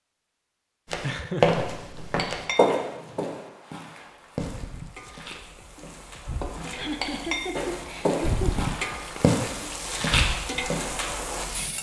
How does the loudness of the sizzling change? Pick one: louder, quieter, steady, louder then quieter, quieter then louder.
louder.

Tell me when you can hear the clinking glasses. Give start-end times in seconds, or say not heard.
1.6-3.4, 6.4-7.6.